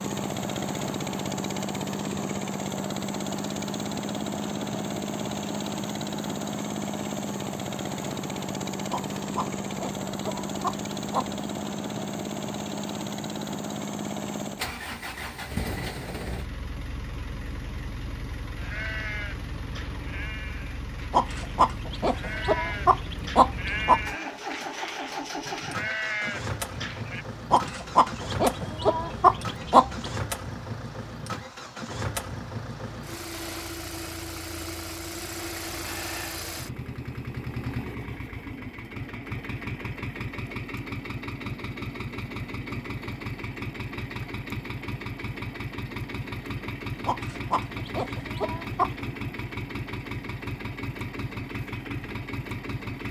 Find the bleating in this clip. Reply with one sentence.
You can hear the bleating from 18.6 to 27.2 s.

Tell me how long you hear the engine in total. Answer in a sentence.
You can hear the engine for 53 seconds altogether.